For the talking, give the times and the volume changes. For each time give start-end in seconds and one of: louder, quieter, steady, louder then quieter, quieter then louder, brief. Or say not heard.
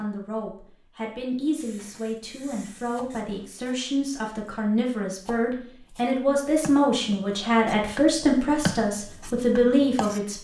0.0-10.3 louder.